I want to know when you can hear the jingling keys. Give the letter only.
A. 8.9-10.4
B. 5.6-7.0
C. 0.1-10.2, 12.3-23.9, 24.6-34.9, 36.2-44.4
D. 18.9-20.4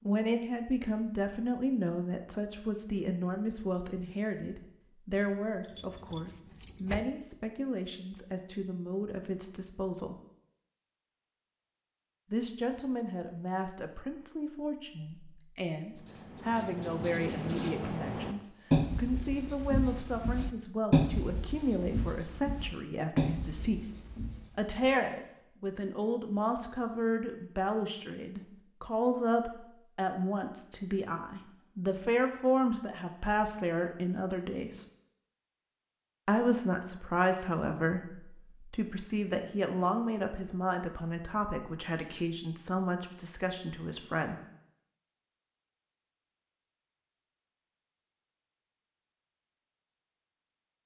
B.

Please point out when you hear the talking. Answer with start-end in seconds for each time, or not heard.
0.1-10.2, 12.3-23.9, 24.6-34.9, 36.2-44.4.